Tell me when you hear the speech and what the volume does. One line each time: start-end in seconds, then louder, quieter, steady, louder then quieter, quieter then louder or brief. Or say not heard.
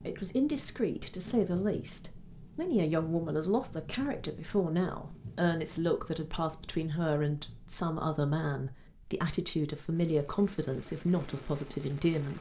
0.1-12.3 steady.